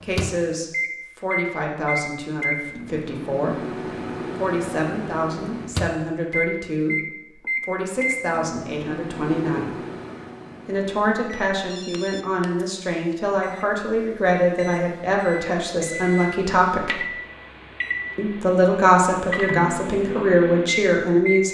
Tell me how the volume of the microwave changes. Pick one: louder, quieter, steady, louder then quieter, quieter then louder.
quieter then louder.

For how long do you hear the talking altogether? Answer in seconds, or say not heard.
19 s.